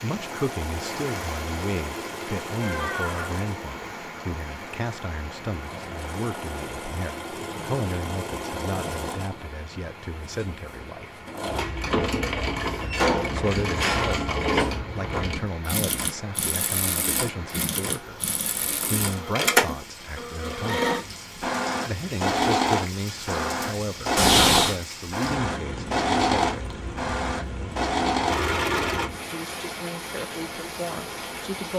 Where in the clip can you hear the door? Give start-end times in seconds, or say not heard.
2.6-3.3, 12.8-15.2, 24.1-24.8.